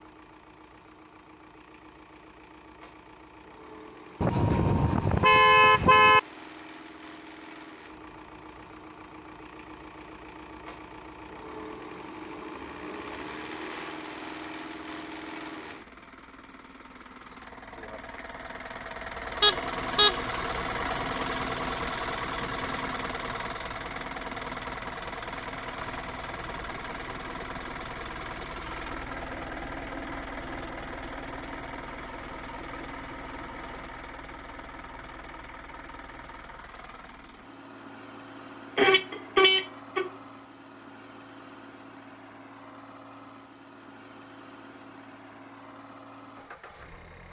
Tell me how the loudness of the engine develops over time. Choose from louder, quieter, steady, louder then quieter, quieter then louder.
louder then quieter.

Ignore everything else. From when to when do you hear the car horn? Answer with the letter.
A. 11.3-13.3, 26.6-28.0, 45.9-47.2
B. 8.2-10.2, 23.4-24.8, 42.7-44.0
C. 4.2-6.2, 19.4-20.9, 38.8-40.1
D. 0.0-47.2
C.